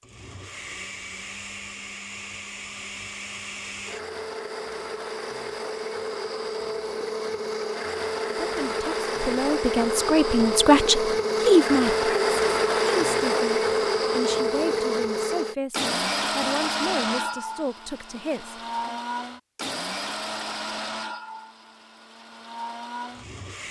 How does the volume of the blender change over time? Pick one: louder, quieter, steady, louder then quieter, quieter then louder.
louder then quieter.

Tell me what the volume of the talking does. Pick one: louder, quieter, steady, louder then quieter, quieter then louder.
louder then quieter.